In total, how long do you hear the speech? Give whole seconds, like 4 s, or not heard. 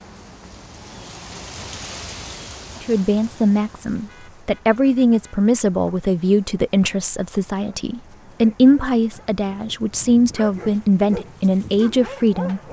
10 s.